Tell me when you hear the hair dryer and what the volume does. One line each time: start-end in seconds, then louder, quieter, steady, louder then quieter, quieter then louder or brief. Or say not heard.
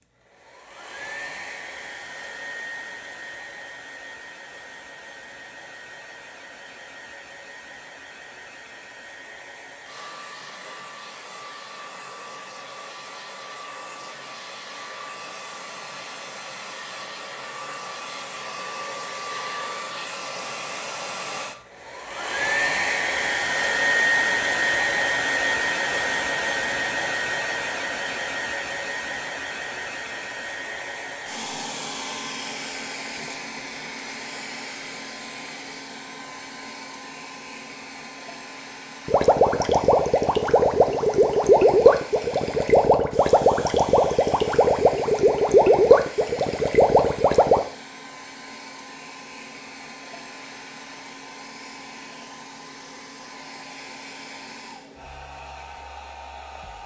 0.0-56.8 louder then quieter.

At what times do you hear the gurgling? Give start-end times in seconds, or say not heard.
39.0-47.6.